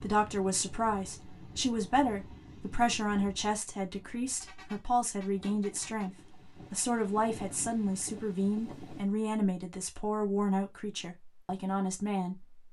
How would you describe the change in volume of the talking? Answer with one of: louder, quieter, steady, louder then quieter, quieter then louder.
steady.